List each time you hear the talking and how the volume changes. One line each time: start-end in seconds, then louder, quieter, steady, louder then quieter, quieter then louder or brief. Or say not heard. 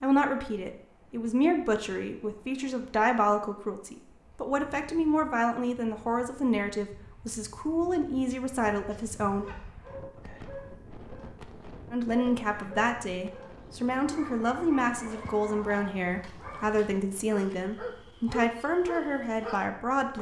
0.0-9.4 steady
11.9-20.1 steady.